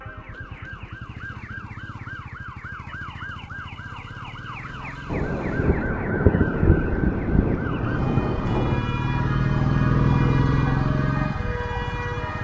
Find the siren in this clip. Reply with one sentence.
You can hear the siren from 0.0 to 12.3 s.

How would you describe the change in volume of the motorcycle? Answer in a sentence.
The loudness of the motorcycle goes up.